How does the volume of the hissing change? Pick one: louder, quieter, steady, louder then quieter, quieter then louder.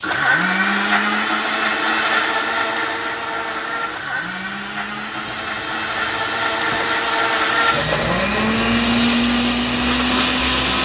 louder.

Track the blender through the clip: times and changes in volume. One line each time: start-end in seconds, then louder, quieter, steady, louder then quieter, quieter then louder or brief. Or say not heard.
0.0-10.7 quieter then louder.